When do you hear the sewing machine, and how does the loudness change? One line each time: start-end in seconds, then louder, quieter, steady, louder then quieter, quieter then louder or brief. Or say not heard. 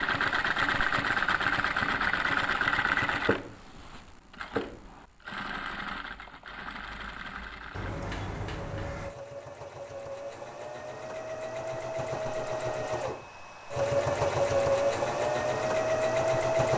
0.0-16.7 quieter then louder.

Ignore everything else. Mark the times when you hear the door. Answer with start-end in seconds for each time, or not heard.
7.7-9.2.